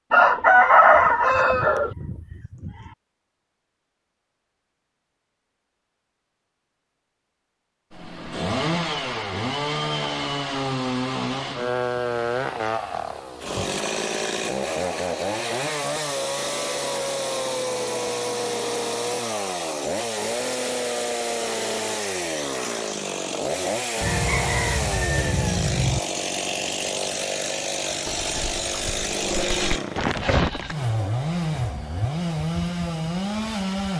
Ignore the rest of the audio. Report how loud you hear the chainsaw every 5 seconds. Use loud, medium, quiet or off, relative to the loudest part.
off, loud, loud, loud, loud, loud, loud.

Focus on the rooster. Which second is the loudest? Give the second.
1 s.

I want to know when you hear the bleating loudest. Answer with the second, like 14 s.
30 s.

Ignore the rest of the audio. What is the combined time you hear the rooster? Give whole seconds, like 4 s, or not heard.
4 s.